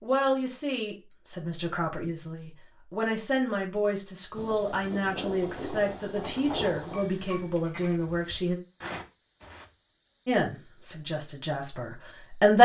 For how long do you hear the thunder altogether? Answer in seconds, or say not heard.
3 s.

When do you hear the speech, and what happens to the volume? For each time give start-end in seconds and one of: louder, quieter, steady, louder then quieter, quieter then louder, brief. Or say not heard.
0.0-8.6 steady
10.2-12.6 brief.